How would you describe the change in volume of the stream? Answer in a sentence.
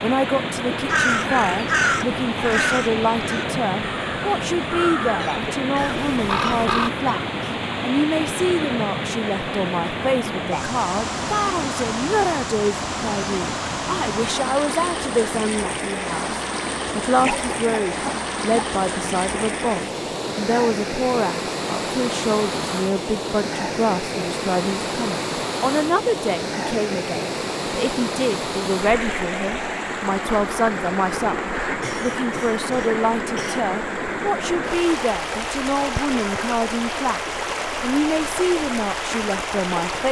The volume of the stream stays about the same.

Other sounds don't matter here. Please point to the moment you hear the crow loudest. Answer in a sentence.
The loudest moment of the crow is at 2 seconds.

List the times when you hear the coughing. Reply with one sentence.
You can hear the coughing from 5.2 to 7.2 s, from 17.2 to 18.6 s and from 31.8 to 33.6 s.